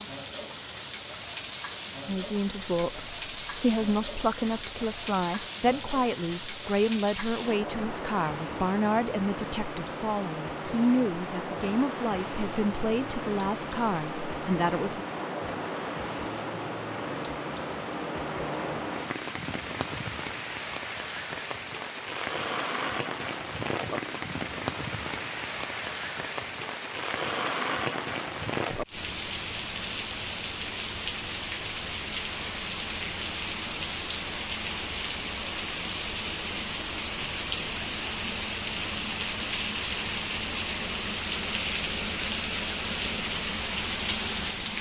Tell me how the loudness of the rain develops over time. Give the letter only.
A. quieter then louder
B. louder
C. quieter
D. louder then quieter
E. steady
B.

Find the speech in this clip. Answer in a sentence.
The speech can be heard from 2.0 to 15.1 s.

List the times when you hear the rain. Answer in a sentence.
The rain can be heard from 0.0 to 44.7 s.